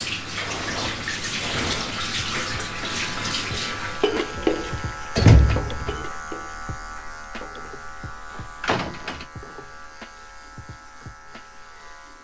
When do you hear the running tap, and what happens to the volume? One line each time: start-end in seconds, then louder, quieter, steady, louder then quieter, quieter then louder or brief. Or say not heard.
0.0-12.1 quieter.